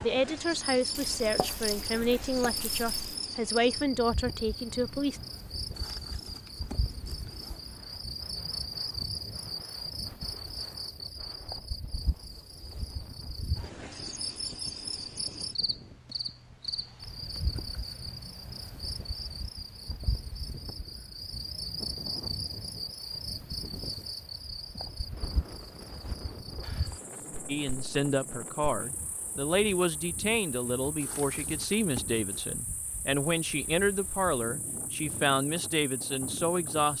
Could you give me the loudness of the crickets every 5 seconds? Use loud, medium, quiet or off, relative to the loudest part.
loud, loud, loud, loud, loud, medium, quiet, quiet.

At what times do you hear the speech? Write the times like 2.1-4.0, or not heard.
0.0-5.2, 27.4-36.9.